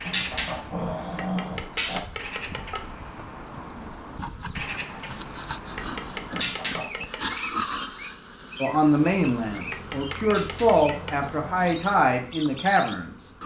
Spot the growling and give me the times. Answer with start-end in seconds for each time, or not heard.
0.1-2.0, 6.3-7.0, 10.2-11.7.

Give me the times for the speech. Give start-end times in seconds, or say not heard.
8.6-13.2.